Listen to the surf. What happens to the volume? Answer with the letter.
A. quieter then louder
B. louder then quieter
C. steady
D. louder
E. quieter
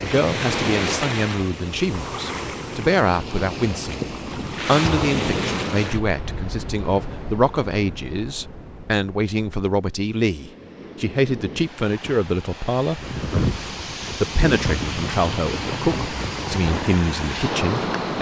A.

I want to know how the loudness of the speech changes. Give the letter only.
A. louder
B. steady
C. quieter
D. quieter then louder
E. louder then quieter
B.